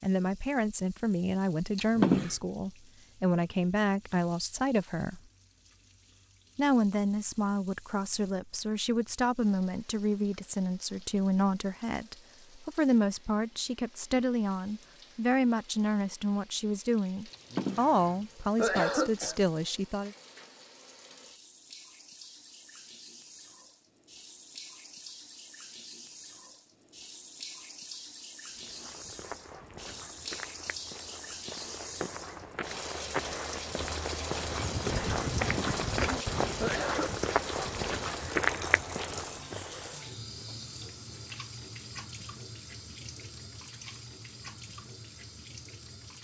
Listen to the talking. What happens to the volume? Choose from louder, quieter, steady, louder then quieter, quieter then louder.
steady.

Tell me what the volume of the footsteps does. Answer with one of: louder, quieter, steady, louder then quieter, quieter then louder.
louder.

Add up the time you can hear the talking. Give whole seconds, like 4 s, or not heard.
19 s.